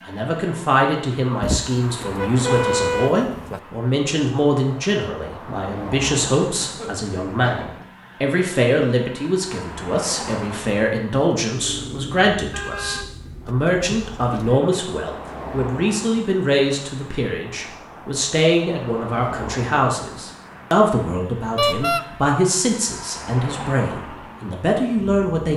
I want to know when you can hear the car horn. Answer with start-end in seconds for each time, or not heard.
1.4-3.6, 12.5-14.6, 21.6-22.1.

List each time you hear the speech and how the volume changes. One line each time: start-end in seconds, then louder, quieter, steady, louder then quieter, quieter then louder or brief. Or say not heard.
0.1-25.5 steady.